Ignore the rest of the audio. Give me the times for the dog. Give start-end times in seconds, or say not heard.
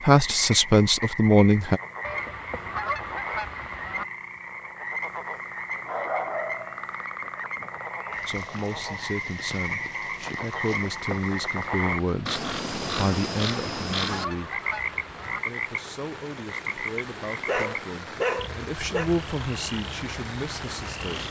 5.8-7.3, 17.4-19.1.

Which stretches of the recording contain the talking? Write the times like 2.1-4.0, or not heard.
0.0-1.8, 8.2-14.7, 15.4-21.2.